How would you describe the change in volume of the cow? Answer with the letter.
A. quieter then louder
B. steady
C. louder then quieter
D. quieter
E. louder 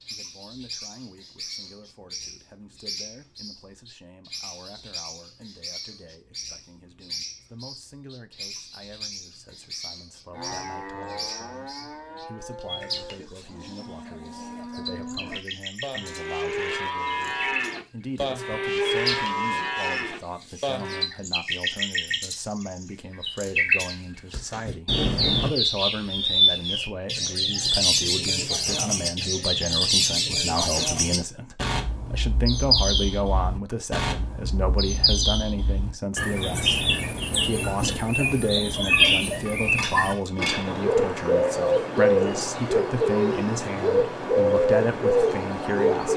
E.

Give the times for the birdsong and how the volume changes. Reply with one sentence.
The birdsong can be heard from 0.0 to 46.1 s, getting louder.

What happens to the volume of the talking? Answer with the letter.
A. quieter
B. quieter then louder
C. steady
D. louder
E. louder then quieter
D.